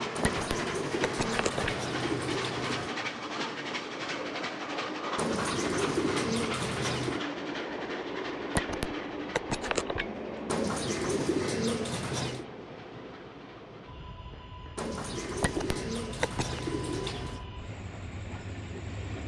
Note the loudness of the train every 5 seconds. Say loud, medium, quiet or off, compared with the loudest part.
loud, loud, medium, medium.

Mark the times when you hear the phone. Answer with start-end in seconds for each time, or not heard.
0.2-1.8, 8.6-10.1, 15.4-16.6.